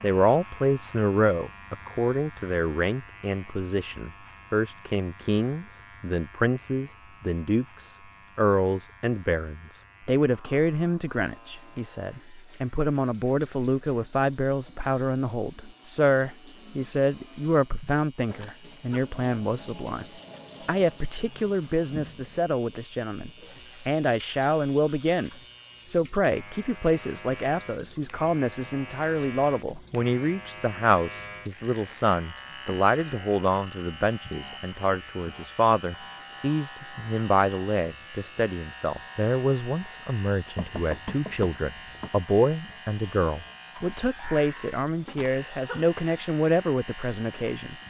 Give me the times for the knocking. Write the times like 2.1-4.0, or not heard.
40.5-42.1.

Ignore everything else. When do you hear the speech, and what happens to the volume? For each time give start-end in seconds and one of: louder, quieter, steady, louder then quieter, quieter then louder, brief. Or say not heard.
0.0-20.1 steady
20.6-47.8 steady.